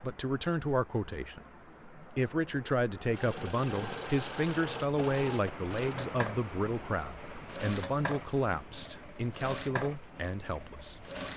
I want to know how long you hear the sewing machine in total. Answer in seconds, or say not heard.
8 s.